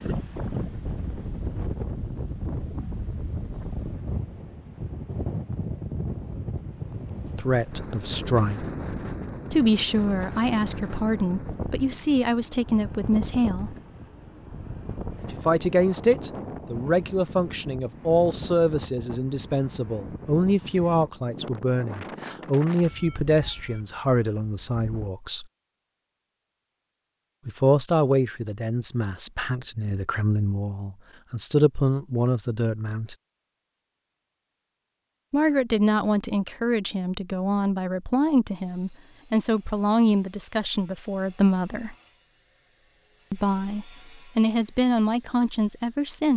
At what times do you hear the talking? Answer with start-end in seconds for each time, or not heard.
7.3-8.6, 9.5-13.8, 15.3-25.4, 27.4-33.1, 35.3-42.0, 43.3-46.3.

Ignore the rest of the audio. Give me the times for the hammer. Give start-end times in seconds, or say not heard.
not heard.